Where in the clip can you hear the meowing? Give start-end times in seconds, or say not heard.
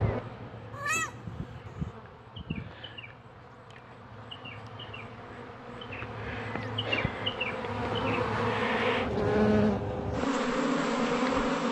0.7-1.9.